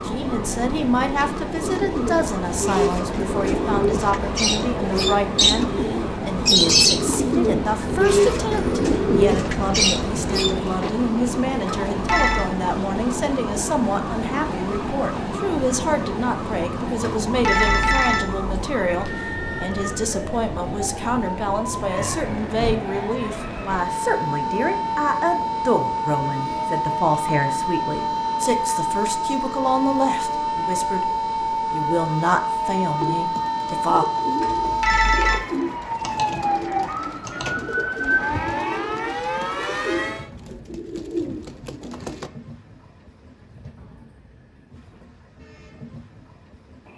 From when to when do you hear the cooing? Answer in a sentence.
You can hear the cooing from 1.6 to 10.9 s and from 33.0 to 42.3 s.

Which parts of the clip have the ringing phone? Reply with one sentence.
You can hear the ringing phone from 11.7 to 12.5 s, from 17.0 to 18.6 s and from 34.4 to 35.4 s.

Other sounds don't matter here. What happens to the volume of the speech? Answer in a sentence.
The loudness of the speech stays about the same.